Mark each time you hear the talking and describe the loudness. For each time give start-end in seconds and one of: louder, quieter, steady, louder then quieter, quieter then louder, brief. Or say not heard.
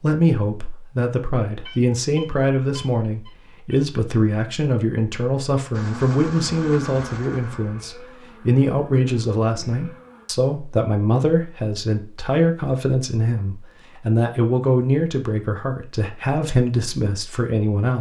0.0-17.9 steady.